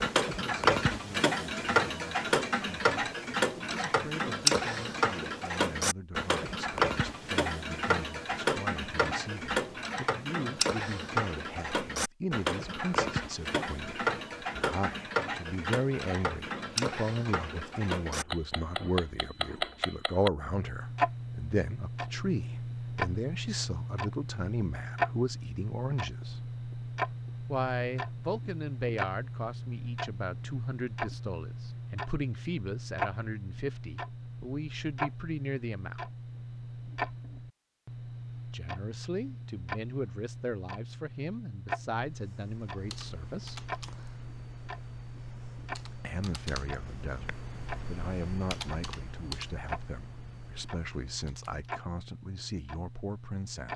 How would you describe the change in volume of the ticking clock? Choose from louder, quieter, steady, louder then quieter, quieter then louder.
quieter.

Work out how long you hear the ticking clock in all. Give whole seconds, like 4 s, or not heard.
54 s.